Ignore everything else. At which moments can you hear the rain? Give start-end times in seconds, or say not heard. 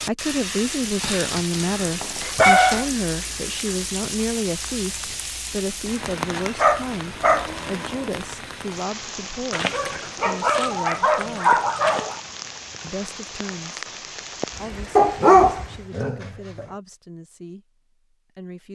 0.0-15.9.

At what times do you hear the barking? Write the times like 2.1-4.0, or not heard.
1.0-2.9, 6.6-7.5, 9.5-12.2, 14.9-16.6.